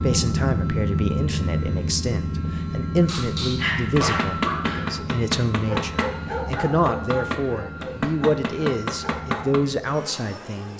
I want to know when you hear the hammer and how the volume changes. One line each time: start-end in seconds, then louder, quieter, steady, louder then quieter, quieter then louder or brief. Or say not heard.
3.0-9.6 steady.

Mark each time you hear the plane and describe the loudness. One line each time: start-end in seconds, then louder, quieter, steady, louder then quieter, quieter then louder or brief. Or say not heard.
0.0-10.7 quieter.